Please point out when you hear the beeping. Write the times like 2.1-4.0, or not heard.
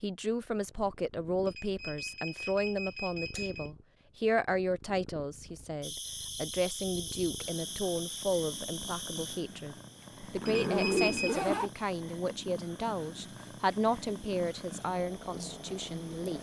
1.4-3.7, 10.4-11.4.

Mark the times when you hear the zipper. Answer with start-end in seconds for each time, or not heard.
10.2-11.7.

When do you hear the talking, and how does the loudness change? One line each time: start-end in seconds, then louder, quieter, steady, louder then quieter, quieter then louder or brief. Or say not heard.
0.0-16.3 steady.